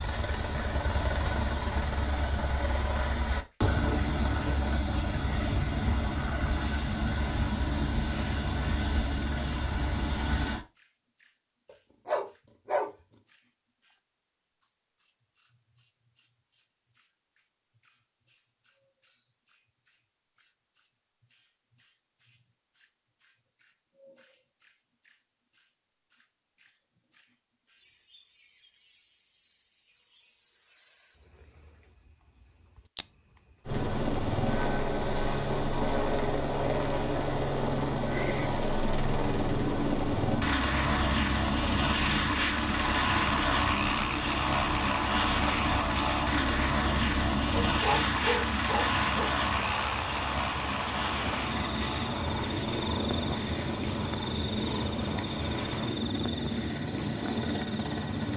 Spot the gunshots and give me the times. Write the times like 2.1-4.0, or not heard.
not heard.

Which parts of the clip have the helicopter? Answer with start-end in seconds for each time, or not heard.
0.0-10.7, 33.6-58.3.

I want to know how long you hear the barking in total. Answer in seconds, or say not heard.
3 s.